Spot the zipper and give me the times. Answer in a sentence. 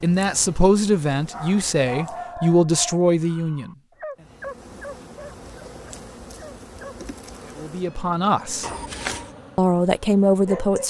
You can hear the zipper from 8.6 to 9.3 s.